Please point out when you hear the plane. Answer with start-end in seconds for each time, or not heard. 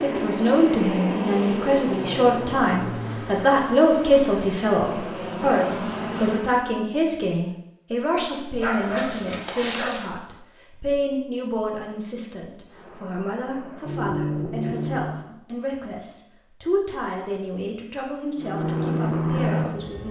0.0-6.5, 12.7-15.3, 18.4-20.0.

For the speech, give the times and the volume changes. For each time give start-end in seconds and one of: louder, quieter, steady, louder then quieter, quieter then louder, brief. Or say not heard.
0.0-20.0 quieter.